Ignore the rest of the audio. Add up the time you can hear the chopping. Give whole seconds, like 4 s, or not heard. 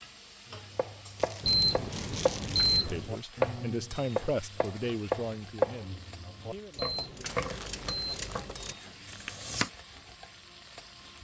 9 s.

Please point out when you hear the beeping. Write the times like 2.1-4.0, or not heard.
1.4-3.1, 6.8-8.3.